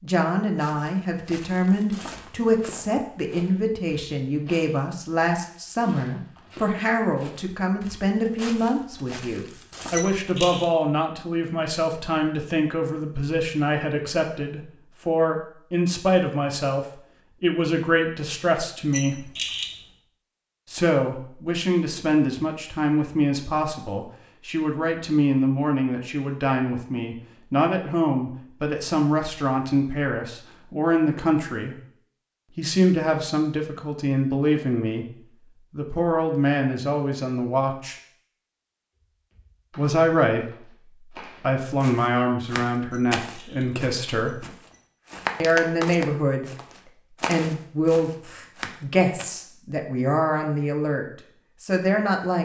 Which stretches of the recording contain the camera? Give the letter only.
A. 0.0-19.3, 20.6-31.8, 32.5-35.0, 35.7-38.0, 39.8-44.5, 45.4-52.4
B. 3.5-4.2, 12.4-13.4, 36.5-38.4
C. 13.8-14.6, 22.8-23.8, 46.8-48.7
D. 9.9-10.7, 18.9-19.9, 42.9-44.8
D.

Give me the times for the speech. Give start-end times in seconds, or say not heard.
0.0-19.3, 20.6-31.8, 32.5-35.0, 35.7-38.0, 39.8-44.5, 45.4-52.4.